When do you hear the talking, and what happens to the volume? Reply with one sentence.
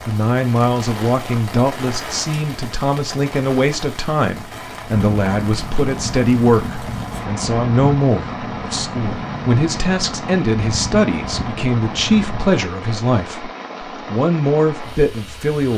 You can hear the talking from 0.1 to 15.7 s, at a steady volume.